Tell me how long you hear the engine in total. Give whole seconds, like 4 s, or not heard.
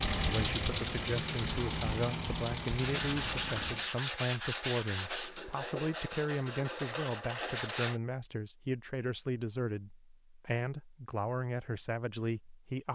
4 s.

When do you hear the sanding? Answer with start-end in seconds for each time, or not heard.
2.8-8.0.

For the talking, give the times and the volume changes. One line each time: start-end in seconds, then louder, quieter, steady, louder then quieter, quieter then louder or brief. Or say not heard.
0.1-12.9 steady.